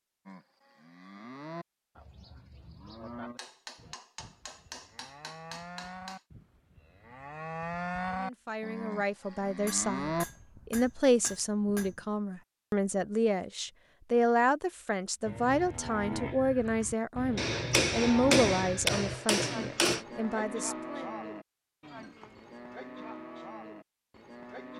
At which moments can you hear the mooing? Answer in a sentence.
The mooing can be heard from 0.2 to 10.2 s and from 15.2 to 24.7 s.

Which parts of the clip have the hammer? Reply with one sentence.
The hammer can be heard from 3.4 to 6.2 s, from 9.6 to 12.0 s and from 17.4 to 20.0 s.